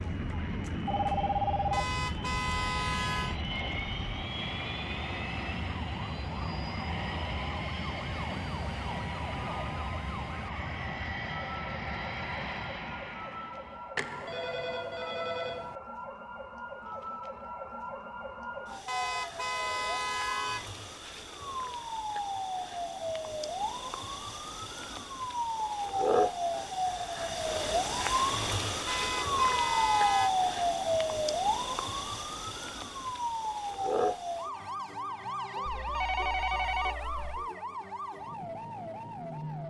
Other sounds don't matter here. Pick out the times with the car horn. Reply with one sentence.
The car horn can be heard from 1.7 to 3.4 s, from 18.9 to 20.7 s and from 28.9 to 30.3 s.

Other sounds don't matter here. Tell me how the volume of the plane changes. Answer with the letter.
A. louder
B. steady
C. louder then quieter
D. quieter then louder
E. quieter
B.